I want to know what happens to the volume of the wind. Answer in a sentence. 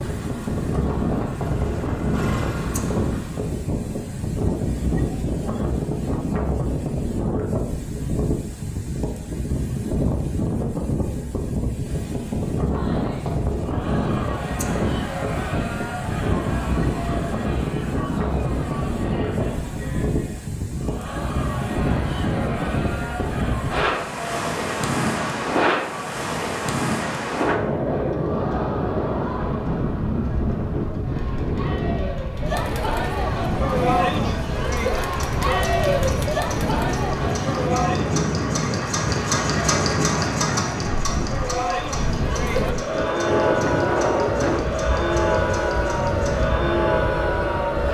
The volume of the wind stays about the same.